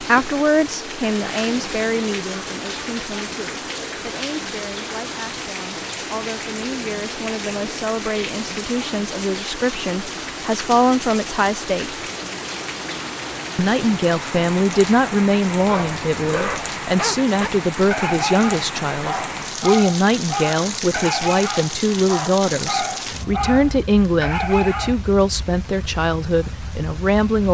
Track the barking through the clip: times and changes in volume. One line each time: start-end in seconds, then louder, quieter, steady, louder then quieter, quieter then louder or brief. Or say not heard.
15.6-24.9 steady.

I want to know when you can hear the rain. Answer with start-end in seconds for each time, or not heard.
0.0-27.5.